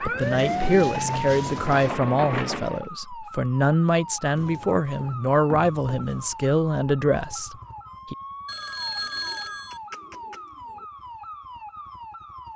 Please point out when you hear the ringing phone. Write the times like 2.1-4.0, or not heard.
8.4-9.8.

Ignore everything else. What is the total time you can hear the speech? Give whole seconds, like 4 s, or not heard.
8 s.